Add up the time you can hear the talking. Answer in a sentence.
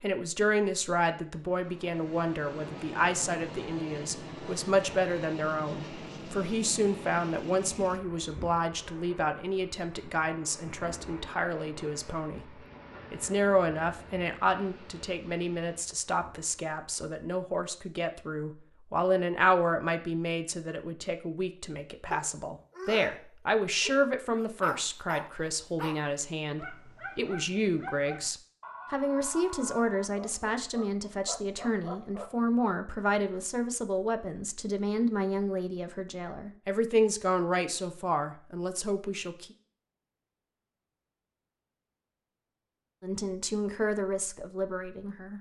You can hear the talking for 42 seconds altogether.